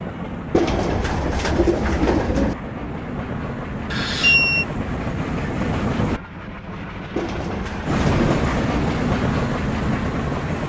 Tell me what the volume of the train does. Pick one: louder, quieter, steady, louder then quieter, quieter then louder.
louder.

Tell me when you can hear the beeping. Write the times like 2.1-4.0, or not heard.
3.9-4.7.